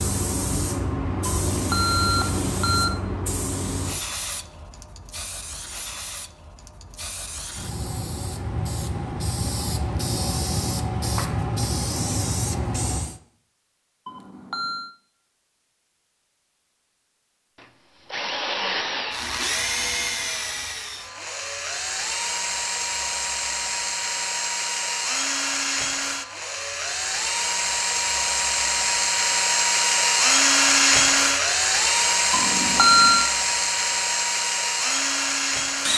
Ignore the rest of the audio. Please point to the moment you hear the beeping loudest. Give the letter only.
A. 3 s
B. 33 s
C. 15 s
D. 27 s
B.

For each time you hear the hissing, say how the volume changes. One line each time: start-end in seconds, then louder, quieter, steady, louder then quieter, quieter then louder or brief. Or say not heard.
0.0-13.2 quieter then louder.